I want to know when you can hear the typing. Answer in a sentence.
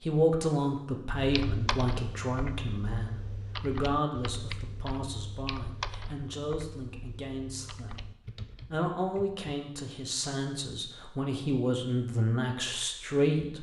The typing can be heard from 1.1 to 9.4 s.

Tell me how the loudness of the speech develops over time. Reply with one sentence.
The loudness of the speech goes down, then up.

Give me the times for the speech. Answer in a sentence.
The speech can be heard from 0.0 to 13.5 s.